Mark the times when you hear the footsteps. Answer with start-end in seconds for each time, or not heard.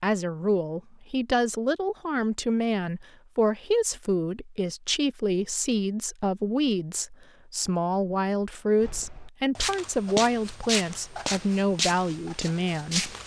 8.8-13.2.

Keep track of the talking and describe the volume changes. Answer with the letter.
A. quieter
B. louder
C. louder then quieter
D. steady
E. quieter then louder
D.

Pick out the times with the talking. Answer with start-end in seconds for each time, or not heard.
0.0-13.2.